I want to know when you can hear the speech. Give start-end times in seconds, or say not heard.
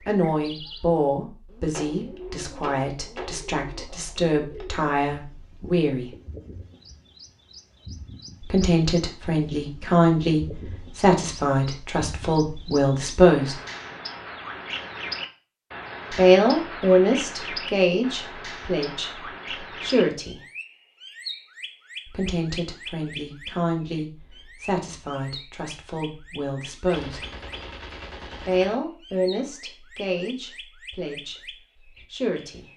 0.0-6.1, 8.4-13.6, 16.1-20.4, 22.1-27.2, 28.4-32.6.